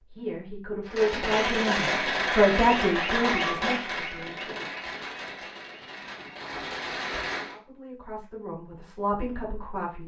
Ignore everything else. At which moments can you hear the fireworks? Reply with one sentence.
You can hear the fireworks from 0.8 to 7.5 s.